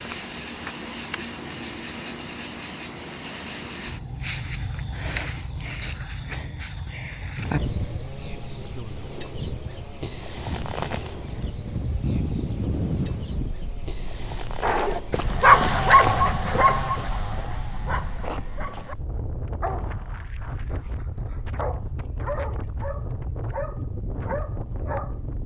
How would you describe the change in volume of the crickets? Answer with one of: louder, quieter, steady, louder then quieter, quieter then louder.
quieter.